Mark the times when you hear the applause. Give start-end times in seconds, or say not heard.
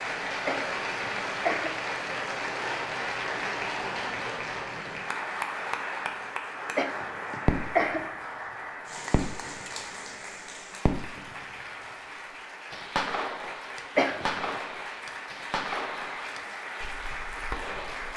0.0-18.1.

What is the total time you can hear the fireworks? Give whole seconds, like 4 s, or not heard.
7 s.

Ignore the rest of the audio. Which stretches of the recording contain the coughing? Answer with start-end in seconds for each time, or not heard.
0.5-1.8, 6.8-8.1, 13.9-14.6.